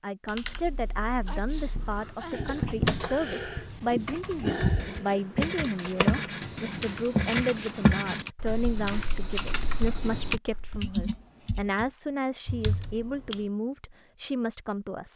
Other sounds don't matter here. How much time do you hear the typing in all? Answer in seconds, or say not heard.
12 s.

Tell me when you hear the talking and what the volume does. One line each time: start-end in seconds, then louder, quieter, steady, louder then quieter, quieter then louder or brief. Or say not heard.
0.0-15.1 steady.